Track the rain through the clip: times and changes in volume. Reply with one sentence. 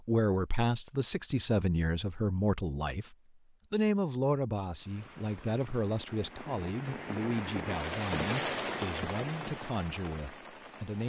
You can hear the rain from 4.8 to 11.0 s, getting louder then quieter.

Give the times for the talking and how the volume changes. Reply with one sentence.
You can hear the talking from 0.1 to 11.0 s, getting quieter.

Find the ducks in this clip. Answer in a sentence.
You can't hear the ducks here.